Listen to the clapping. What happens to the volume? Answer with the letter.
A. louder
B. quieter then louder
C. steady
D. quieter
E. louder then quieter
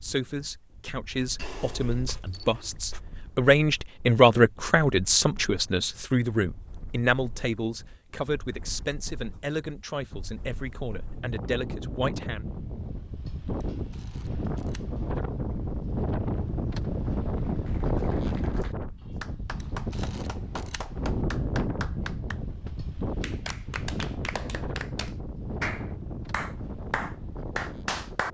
A.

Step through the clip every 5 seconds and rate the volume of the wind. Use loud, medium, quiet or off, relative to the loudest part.
quiet, quiet, medium, loud, loud, medium.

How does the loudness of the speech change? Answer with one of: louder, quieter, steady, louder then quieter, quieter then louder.
louder then quieter.